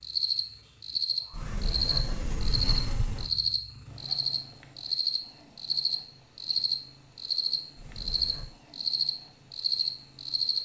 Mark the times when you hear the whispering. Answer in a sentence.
The whispering can't be heard in this clip.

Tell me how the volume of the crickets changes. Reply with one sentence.
The volume of the crickets stays about the same.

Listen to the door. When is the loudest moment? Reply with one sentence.
The loudest moment of the door is at 3 seconds.